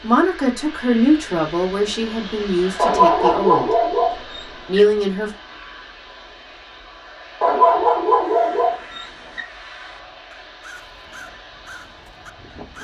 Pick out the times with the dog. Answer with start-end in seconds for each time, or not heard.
2.8-4.8, 7.4-9.4.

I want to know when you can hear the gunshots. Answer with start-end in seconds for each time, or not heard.
not heard.